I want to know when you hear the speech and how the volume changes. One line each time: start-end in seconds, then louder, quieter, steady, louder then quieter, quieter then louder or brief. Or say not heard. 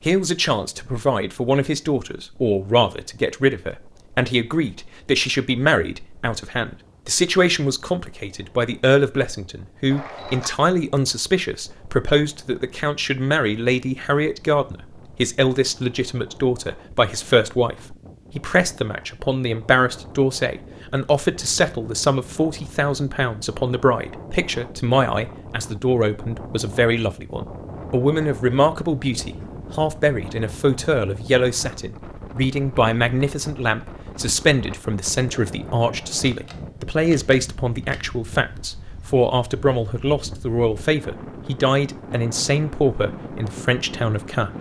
0.0-44.5 steady.